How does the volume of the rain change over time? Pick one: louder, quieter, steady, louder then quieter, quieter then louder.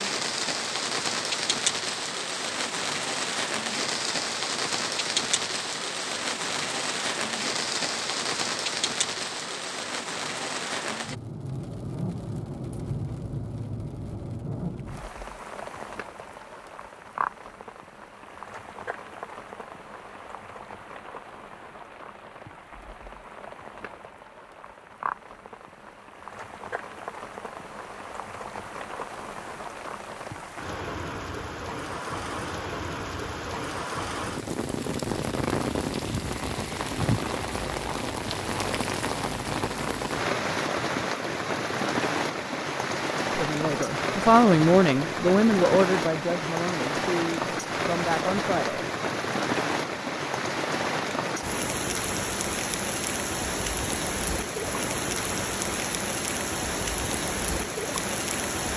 quieter then louder.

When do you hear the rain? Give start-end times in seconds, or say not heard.
0.0-58.7.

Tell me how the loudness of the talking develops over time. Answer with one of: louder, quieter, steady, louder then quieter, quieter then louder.
quieter.